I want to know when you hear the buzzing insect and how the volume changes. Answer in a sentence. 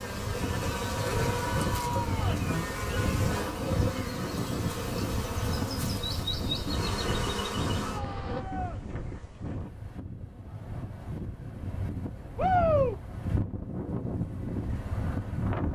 You can hear the buzzing insect from 0.0 to 8.4 s, at a steady volume.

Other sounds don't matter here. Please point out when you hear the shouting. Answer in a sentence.
You can hear the shouting from 1.2 to 2.5 s, from 7.8 to 8.8 s and from 12.3 to 12.9 s.